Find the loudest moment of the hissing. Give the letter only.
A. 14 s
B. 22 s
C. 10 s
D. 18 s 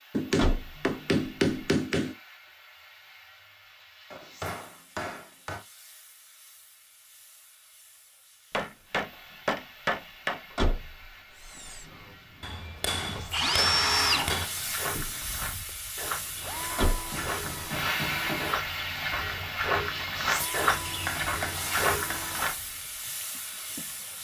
D.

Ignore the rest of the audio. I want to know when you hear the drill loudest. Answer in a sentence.
The loudest moment of the drill is at 14 seconds.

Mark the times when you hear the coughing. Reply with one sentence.
You can't hear the coughing here.